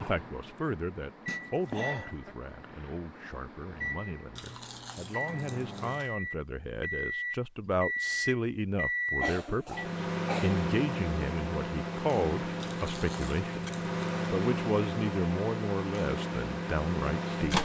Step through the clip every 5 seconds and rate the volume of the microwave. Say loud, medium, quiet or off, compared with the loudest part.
medium, loud, loud, loud.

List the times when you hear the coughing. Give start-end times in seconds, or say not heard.
1.2-2.4, 9.2-10.6.